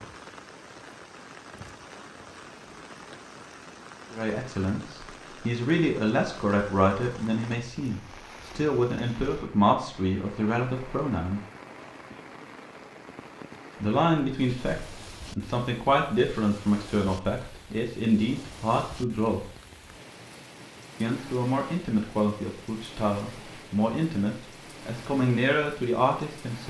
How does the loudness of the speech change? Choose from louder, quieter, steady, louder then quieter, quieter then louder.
steady.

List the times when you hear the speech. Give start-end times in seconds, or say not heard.
4.1-11.4, 13.8-19.5, 21.0-26.6.